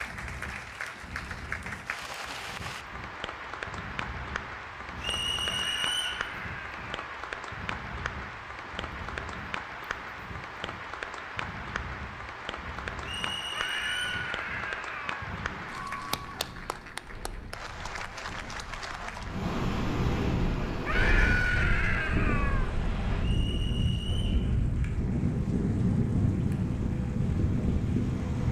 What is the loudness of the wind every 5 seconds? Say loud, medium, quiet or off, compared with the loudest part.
quiet, quiet, quiet, medium, loud, loud.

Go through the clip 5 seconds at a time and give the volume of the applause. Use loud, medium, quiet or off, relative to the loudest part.
loud, loud, loud, loud, quiet, quiet.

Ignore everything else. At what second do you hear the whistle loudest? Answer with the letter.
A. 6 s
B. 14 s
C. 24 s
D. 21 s
A.